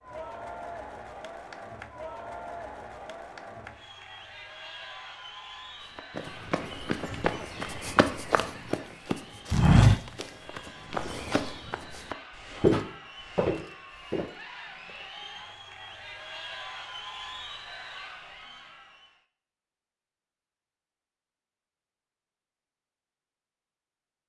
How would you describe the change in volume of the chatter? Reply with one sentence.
The volume of the chatter goes down, then up.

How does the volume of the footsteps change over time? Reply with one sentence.
The loudness of the footsteps goes up, then down.